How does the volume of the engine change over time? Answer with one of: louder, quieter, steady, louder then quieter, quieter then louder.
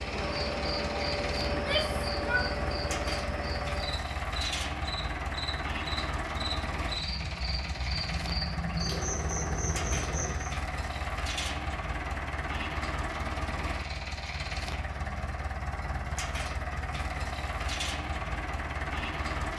steady.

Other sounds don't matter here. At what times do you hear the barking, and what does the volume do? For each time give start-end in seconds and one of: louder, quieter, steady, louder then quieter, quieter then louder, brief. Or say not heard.
not heard.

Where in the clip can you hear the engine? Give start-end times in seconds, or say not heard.
0.0-19.5.